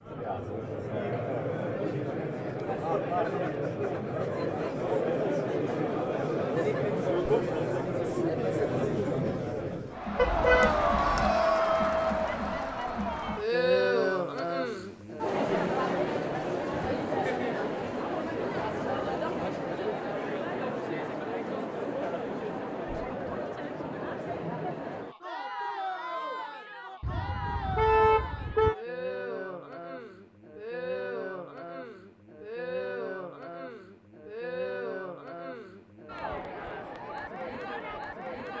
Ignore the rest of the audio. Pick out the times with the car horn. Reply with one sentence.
You can hear the car horn from 10.2 to 11.3 s and from 27.0 to 28.8 s.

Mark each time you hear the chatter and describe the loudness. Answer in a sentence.
The chatter can be heard from 0.0 to 38.5 s, getting quieter.